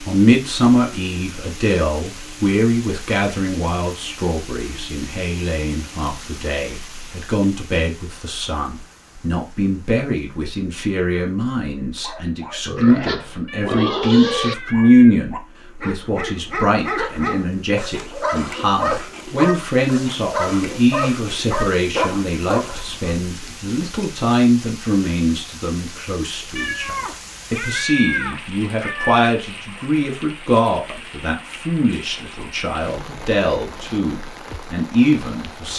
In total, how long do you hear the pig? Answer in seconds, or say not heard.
2 s.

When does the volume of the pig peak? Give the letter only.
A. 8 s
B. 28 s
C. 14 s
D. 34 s
C.